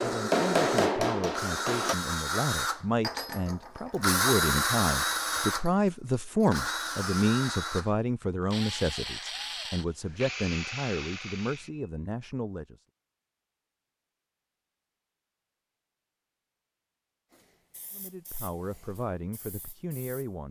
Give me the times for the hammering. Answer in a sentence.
The hammering can be heard from 0.0 to 1.9 s.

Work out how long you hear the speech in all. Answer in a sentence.
The speech can be heard for 15 seconds in total.